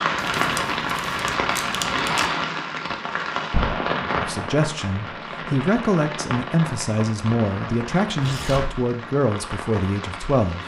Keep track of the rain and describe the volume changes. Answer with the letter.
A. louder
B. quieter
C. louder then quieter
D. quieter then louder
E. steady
B.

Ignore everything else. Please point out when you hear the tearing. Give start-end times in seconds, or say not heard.
0.1-2.2, 8.2-8.8.